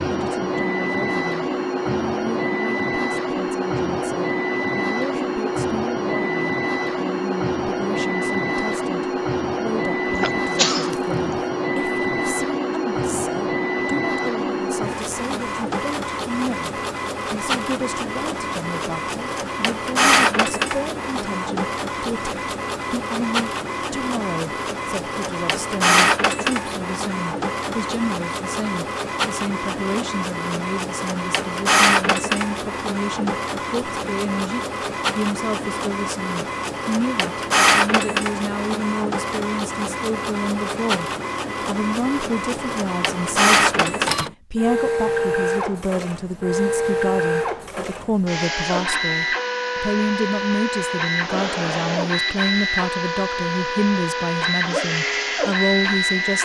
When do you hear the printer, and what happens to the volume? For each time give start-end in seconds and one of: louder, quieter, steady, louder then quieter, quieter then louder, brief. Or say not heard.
0.0-56.4 steady.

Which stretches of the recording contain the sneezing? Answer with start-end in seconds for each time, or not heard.
10.1-11.2.